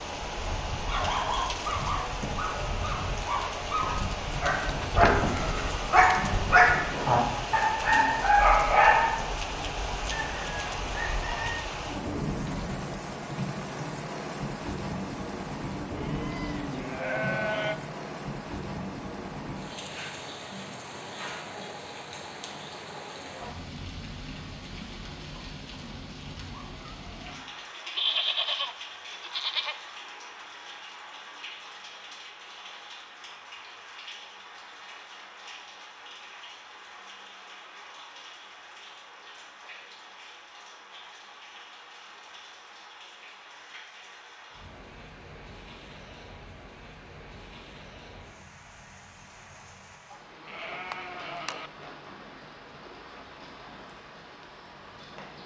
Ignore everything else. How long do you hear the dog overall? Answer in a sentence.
You can hear the dog for 8 seconds altogether.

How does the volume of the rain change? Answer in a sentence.
The loudness of the rain goes down.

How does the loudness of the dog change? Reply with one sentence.
The volume of the dog goes up.